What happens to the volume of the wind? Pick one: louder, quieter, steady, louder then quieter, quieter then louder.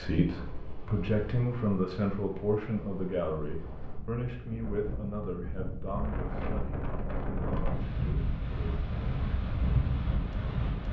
louder.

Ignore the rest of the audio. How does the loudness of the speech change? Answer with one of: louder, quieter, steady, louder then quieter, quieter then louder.
quieter.